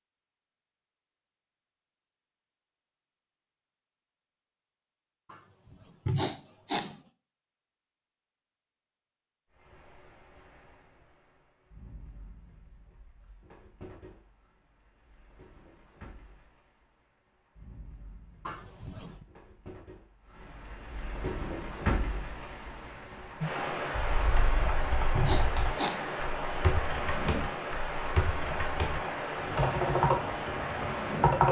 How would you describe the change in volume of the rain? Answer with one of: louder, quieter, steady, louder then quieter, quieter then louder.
louder.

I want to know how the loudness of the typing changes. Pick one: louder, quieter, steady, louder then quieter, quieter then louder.
louder.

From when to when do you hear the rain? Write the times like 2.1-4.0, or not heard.
9.5-31.4.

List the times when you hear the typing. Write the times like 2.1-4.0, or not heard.
23.9-31.4.